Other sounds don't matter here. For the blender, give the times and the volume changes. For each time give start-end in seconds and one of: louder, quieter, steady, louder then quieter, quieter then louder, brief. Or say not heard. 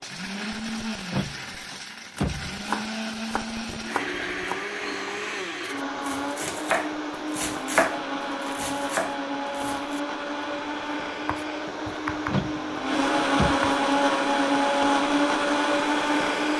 0.0-16.5 louder.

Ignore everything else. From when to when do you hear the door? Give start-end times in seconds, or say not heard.
1.1-2.5, 12.3-13.6.